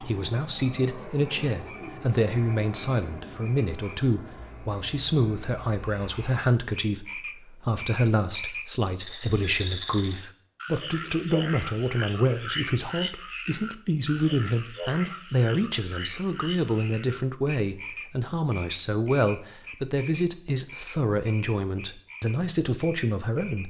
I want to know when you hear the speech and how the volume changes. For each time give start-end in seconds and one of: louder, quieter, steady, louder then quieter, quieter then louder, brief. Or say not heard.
0.0-23.6 steady.